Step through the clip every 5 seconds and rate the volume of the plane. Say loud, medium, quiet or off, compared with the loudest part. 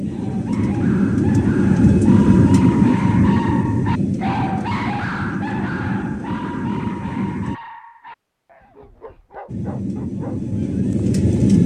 loud, medium, loud.